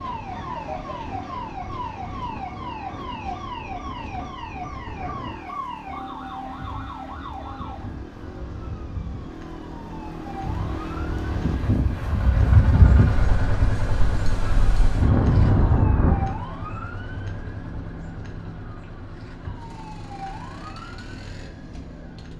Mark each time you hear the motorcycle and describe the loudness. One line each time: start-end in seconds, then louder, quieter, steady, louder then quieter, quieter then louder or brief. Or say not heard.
0.1-22.3 louder then quieter.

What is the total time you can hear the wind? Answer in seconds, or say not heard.
16 s.